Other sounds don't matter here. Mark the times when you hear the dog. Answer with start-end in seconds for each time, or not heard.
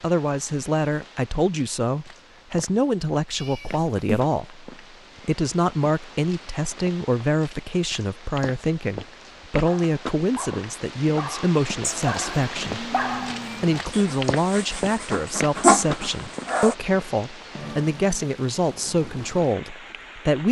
9.7-16.8.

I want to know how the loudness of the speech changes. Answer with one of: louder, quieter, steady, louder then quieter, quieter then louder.
steady.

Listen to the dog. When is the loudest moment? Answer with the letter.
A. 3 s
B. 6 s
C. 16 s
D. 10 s
C.